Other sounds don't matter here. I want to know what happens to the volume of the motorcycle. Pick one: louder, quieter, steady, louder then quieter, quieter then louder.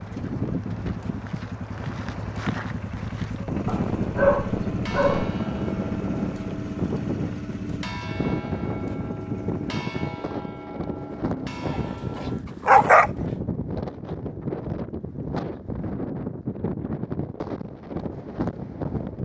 louder then quieter.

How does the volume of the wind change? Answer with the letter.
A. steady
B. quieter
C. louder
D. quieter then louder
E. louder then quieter
A.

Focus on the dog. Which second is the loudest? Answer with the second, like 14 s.
13 s.